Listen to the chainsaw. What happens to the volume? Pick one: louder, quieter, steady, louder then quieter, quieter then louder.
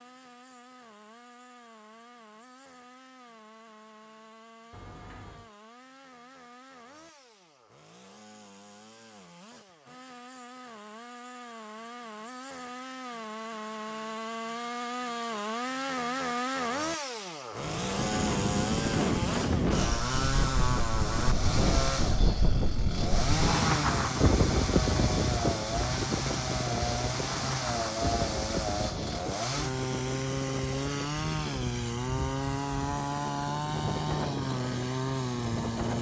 louder.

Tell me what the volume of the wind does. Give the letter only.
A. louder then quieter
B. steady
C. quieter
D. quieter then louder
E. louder
C.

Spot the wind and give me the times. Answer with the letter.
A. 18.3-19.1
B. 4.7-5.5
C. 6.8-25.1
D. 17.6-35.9
D.